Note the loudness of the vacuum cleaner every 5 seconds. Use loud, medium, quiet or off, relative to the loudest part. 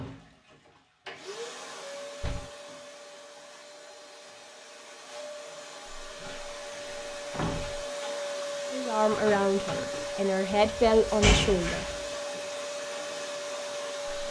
medium, loud, loud.